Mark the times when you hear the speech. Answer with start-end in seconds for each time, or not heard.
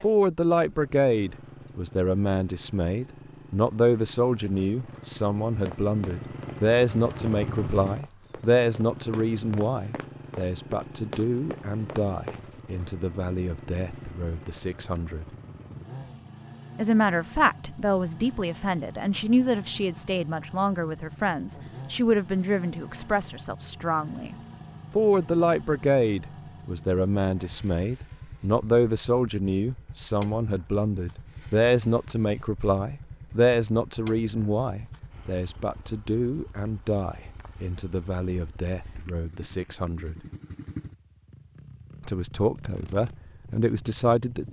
0.0-15.2, 16.8-24.4, 24.9-40.1, 42.0-44.4.